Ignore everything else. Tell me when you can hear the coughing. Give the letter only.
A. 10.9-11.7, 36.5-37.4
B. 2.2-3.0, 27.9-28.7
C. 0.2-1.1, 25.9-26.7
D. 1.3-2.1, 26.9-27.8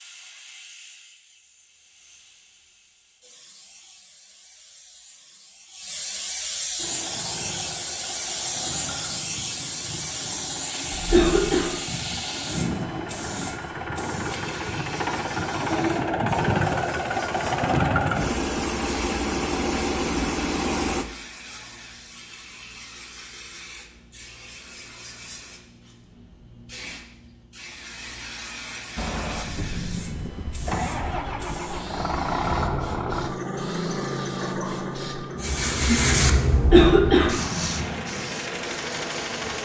A.